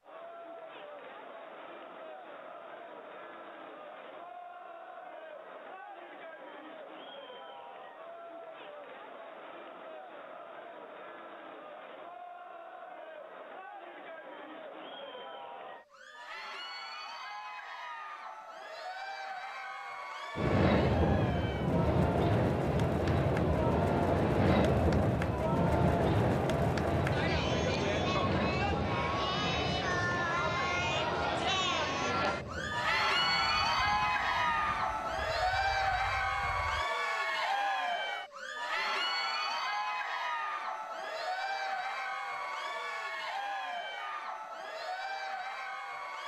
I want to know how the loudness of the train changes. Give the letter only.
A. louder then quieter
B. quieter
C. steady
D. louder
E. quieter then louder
B.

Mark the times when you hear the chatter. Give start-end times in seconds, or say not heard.
0.0-46.2.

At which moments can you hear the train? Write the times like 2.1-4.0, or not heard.
20.4-36.9.